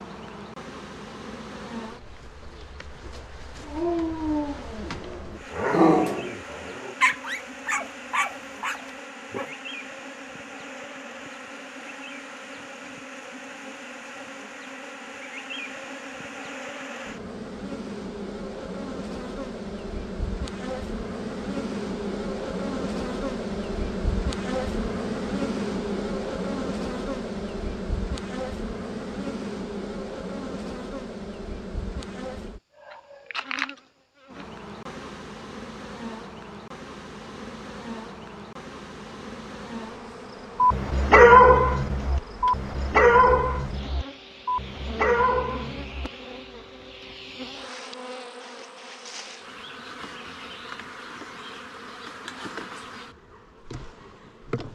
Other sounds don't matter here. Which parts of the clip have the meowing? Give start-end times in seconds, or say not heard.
not heard.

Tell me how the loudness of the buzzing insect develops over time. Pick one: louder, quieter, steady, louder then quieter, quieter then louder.
louder then quieter.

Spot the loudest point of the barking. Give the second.
41 s.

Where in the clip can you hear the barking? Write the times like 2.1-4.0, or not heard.
3.6-9.5, 40.6-46.1.